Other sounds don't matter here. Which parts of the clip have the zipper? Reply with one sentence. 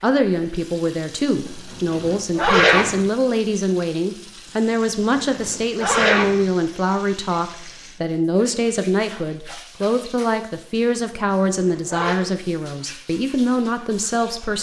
The zipper can be heard from 1.9 to 3.0 s, from 5.3 to 6.4 s and from 10.9 to 12.2 s.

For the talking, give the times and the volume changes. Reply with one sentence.
The talking can be heard from 0.0 to 14.5 s, at a steady volume.